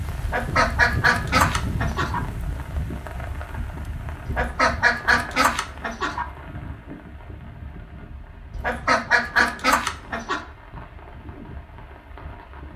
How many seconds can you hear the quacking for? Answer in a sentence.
The quacking can be heard for 6 seconds in total.